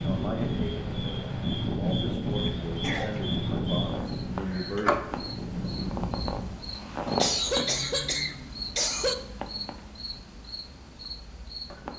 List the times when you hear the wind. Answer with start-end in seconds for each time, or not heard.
0.0-6.7.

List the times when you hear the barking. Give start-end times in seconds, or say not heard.
not heard.